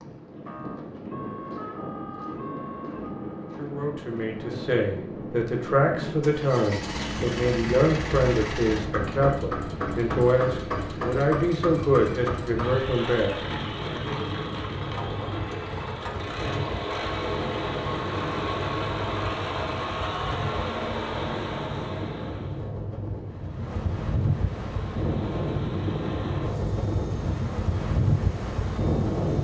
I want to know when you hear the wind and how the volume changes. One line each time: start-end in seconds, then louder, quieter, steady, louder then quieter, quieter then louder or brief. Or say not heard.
0.0-29.3 louder.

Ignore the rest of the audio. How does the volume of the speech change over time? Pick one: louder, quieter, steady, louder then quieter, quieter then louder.
steady.